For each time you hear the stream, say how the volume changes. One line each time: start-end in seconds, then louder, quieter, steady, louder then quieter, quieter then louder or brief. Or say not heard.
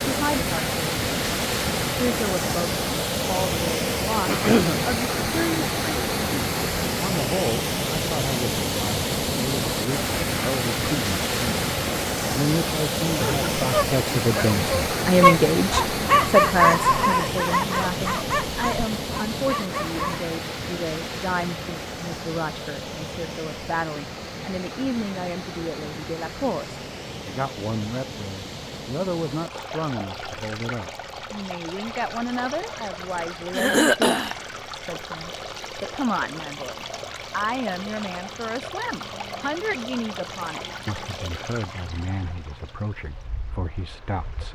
0.0-44.5 quieter.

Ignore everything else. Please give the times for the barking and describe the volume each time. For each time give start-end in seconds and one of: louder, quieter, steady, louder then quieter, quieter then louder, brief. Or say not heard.
13.2-20.3 louder then quieter.